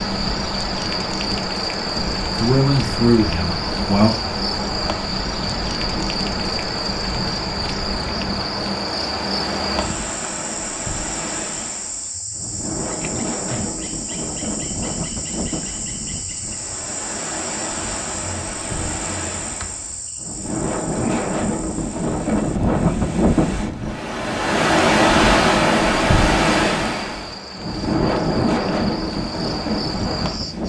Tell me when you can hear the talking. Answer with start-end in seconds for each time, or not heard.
2.4-4.2.